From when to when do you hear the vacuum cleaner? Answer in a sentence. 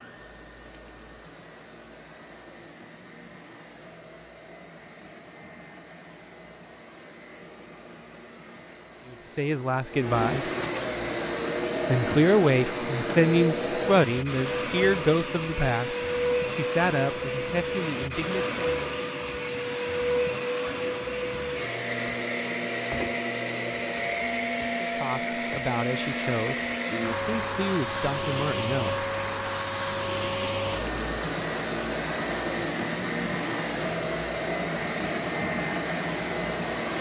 The vacuum cleaner can be heard from 0.0 to 36.9 s.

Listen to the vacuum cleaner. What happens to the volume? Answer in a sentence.
The loudness of the vacuum cleaner goes up.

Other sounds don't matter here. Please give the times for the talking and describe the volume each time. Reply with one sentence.
The talking can be heard briefly from 9.1 to 10.5 s; from 11.8 to 18.6 s, getting quieter; briefly from 24.8 to 26.6 s; and briefly from 27.2 to 29.4 s.